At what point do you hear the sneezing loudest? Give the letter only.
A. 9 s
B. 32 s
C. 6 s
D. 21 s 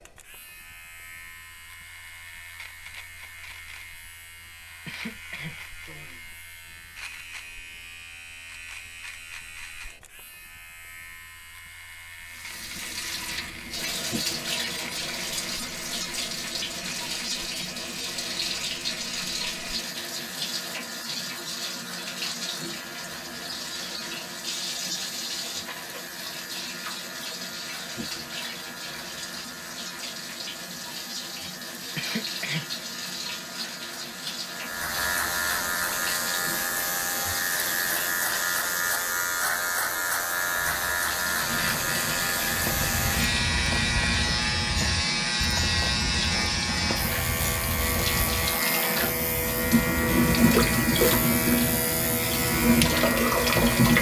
B.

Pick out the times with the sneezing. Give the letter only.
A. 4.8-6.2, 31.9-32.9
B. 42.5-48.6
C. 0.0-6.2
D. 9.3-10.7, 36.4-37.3
A.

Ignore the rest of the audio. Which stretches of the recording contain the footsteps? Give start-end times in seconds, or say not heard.
42.5-48.6.